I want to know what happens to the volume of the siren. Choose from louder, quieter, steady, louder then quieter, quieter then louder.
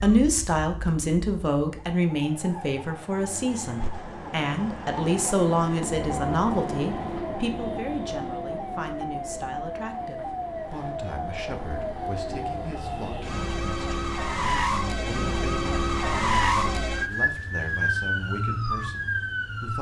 louder.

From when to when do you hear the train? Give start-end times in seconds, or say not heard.
3.2-12.8.